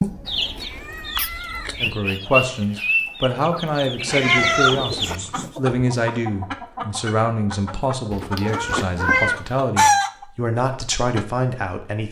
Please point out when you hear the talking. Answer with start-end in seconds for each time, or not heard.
1.8-12.0.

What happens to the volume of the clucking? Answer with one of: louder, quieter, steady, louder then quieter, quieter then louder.
quieter then louder.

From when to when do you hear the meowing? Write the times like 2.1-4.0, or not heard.
0.0-2.0, 4.0-5.5, 8.1-9.6.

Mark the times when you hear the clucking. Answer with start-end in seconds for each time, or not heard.
0.2-11.2.